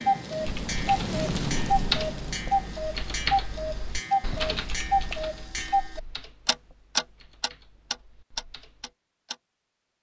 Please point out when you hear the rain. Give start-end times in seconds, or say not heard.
0.0-5.4.